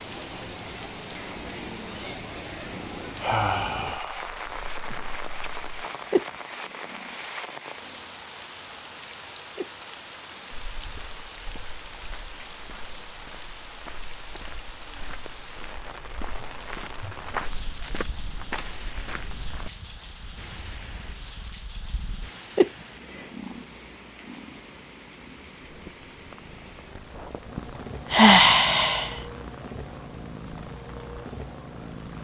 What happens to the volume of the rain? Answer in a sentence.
The volume of the rain goes down.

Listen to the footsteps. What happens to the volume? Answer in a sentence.
The loudness of the footsteps goes up.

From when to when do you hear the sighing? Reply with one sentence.
You can hear the sighing from 3.2 to 4.3 s, from 12.8 to 13.2 s and from 28.1 to 29.2 s.